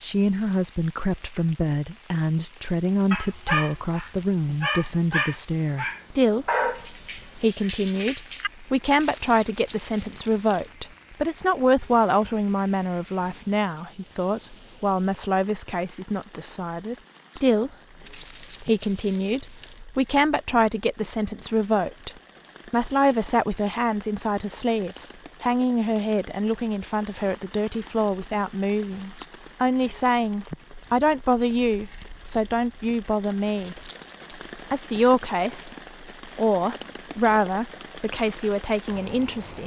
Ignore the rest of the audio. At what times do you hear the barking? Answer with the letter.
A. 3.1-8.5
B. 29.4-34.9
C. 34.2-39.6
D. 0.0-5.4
A.